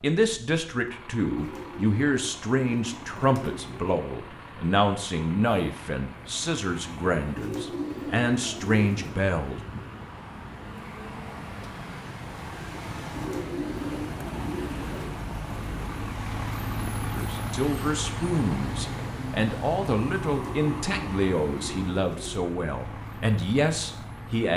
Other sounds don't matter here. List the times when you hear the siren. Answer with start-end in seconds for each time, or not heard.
not heard.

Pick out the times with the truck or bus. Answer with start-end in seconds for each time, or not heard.
0.1-24.5.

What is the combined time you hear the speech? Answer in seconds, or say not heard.
17 s.